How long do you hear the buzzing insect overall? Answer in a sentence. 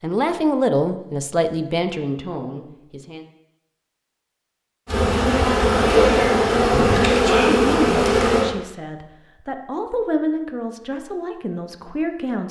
You can hear the buzzing insect for 4 seconds altogether.